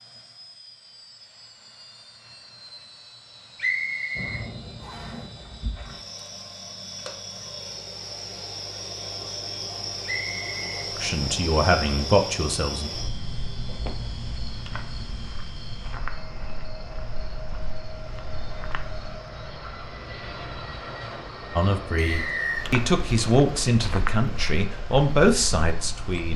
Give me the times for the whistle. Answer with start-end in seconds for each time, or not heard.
3.5-5.2, 10.1-10.7, 21.9-22.6.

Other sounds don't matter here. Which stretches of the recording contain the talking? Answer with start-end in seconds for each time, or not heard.
10.9-12.9, 21.6-26.3.